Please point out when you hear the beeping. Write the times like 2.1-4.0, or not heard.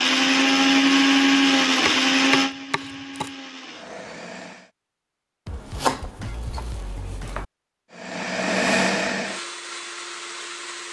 not heard.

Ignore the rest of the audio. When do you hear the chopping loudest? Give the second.
6 s.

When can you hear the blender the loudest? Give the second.
1 s.